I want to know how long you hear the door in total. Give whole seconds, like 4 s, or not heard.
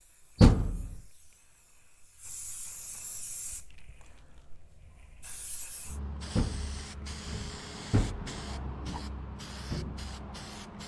3 s.